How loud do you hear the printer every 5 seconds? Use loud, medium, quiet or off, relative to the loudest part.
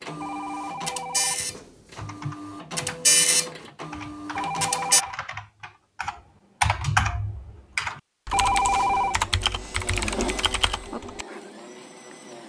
loud, quiet, medium.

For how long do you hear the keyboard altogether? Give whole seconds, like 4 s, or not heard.
9 s.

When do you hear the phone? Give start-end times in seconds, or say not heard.
0.2-2.4, 4.3-5.2, 8.3-9.2.